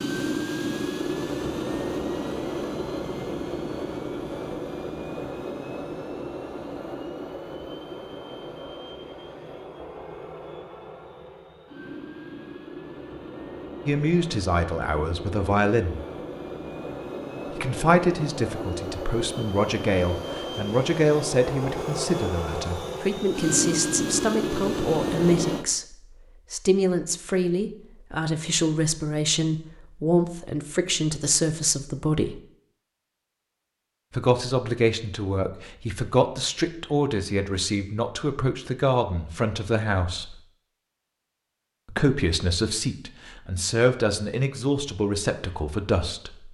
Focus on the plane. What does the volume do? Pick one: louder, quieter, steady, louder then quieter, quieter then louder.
quieter then louder.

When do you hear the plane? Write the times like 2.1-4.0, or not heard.
0.0-25.6.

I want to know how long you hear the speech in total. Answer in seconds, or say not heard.
28 s.